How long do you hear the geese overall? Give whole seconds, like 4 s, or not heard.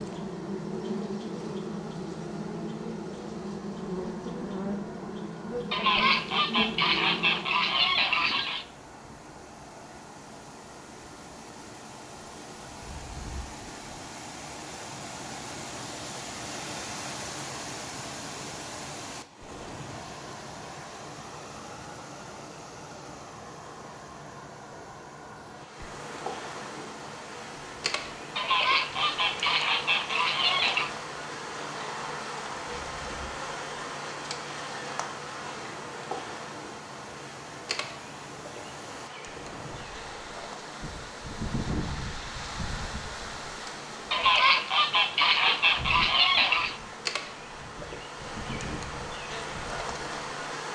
8 s.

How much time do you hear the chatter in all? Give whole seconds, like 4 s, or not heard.
not heard.